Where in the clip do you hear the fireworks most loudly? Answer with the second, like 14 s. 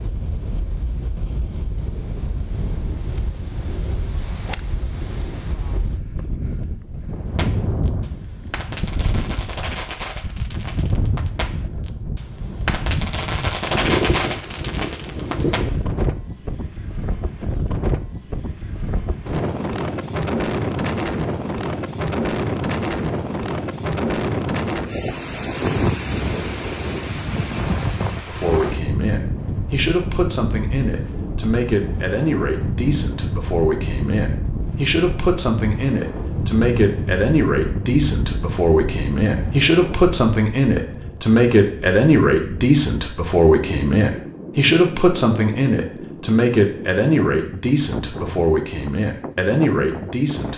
14 s.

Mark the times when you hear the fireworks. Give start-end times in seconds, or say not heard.
7.3-15.8.